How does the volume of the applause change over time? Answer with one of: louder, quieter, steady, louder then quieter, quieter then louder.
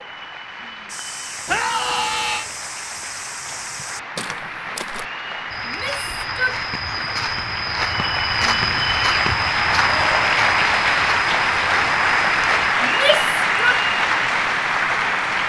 louder.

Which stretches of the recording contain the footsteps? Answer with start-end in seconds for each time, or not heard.
0.8-12.8.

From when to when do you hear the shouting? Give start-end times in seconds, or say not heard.
1.4-2.5, 5.7-6.6, 12.8-13.8.